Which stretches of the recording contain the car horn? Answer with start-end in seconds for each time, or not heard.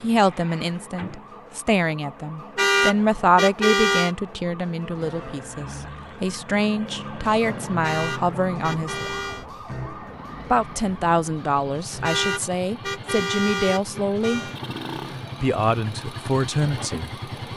2.5-4.1, 7.8-9.4, 12.0-14.6.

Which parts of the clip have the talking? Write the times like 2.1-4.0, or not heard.
0.0-9.1, 10.5-14.4, 15.4-17.1.